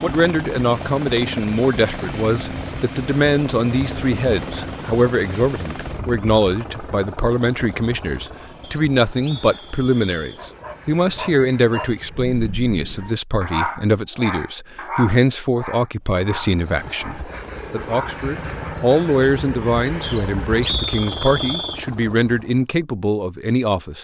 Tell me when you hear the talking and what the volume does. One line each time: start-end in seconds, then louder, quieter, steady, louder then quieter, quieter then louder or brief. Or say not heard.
0.0-24.0 steady.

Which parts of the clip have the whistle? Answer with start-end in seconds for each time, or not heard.
8.6-10.4, 20.0-21.9.